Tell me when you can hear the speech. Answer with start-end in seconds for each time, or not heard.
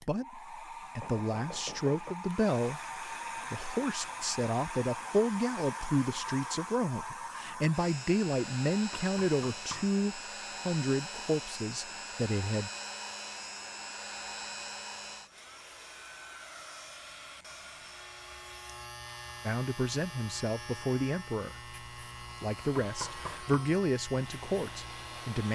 0.1-12.7, 19.4-21.8, 22.4-25.4.